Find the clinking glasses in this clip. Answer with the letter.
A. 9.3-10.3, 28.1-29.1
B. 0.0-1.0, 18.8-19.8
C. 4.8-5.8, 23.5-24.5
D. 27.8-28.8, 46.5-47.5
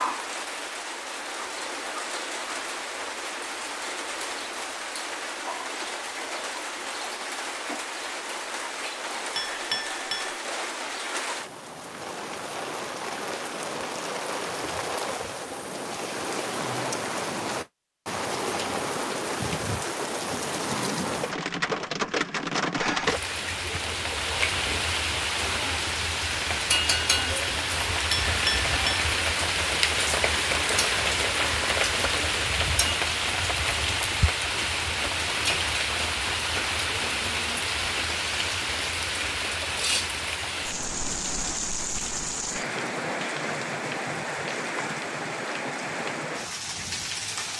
A.